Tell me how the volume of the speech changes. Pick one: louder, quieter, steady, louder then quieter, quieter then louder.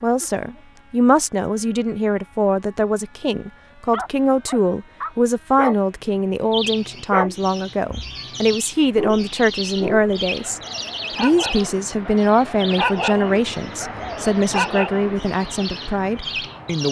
steady.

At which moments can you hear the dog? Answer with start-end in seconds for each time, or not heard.
3.9-5.8, 6.4-15.2.